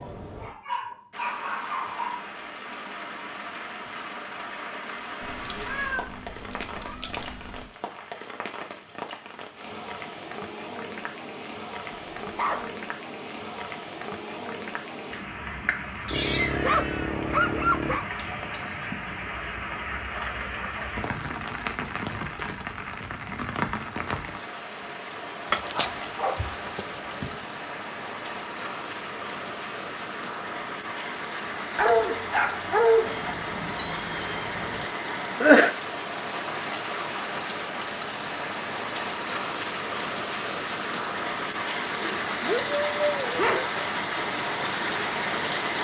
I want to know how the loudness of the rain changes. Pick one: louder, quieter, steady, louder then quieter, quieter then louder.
louder.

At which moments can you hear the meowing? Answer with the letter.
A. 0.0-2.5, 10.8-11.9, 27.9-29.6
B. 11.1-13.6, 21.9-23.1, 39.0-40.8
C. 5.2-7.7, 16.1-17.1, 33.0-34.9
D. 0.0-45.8
C.